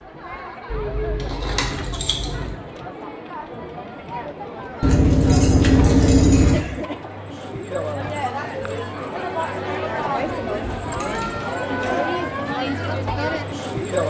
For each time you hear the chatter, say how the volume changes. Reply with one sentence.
You can hear the chatter from 0.0 to 14.0 s, getting louder.